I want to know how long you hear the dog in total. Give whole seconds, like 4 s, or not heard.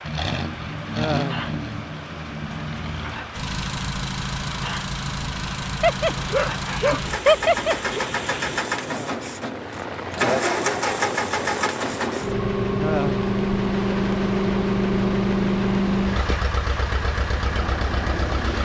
2 s.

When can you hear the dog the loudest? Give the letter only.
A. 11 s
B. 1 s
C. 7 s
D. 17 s
C.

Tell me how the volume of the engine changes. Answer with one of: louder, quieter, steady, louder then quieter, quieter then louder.
louder.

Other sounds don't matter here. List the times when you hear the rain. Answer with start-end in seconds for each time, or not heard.
0.0-18.6.